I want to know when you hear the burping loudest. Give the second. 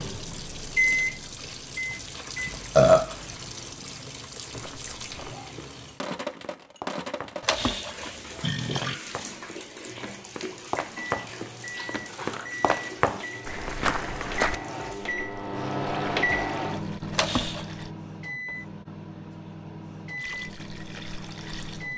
3 s.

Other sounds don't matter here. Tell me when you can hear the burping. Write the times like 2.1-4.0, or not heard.
2.5-3.2, 7.4-8.9, 17.1-17.6.